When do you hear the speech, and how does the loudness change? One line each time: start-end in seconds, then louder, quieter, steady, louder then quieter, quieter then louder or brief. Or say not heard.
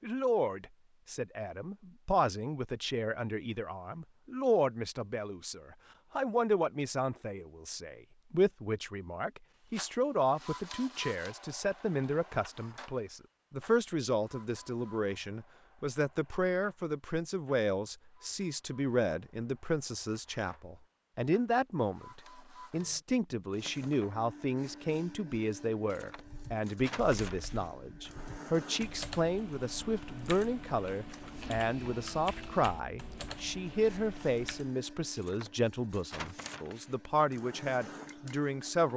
0.0-38.9 steady.